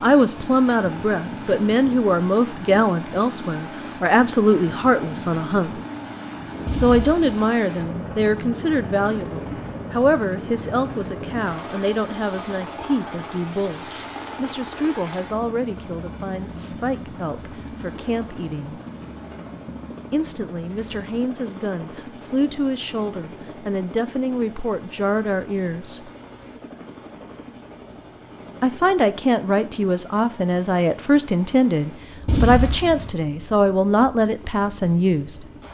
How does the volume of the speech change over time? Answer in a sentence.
The loudness of the speech goes down, then up.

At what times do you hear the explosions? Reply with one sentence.
You can hear the explosions from 6.7 to 7.3 s and from 32.2 to 33.1 s.